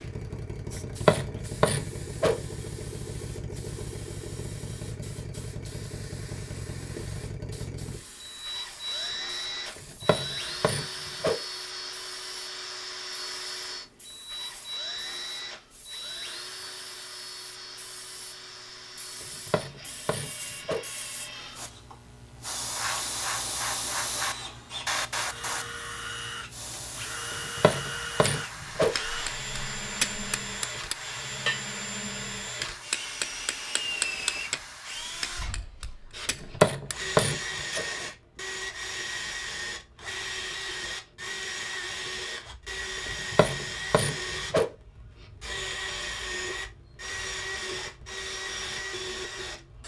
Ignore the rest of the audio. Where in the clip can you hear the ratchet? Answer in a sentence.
The ratchet can be heard from 0.8 to 2.4 s, from 9.8 to 11.4 s, from 19.2 to 20.9 s, from 27.3 to 28.9 s, from 36.3 to 37.9 s and from 43.0 to 44.7 s.